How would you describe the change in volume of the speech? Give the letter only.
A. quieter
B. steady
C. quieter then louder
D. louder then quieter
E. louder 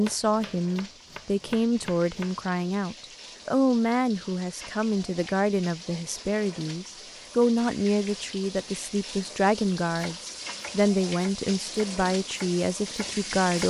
B.